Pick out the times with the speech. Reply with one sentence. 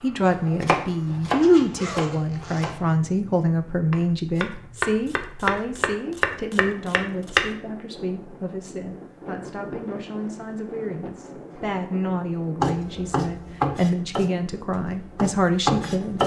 You can hear the speech from 0.0 to 16.2 s.